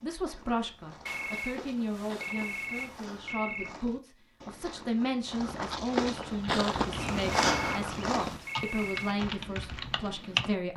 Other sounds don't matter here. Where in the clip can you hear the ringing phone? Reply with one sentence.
The ringing phone can be heard from 1.1 to 3.8 s and from 7.3 to 9.2 s.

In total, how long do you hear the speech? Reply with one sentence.
You can hear the speech for 11 seconds altogether.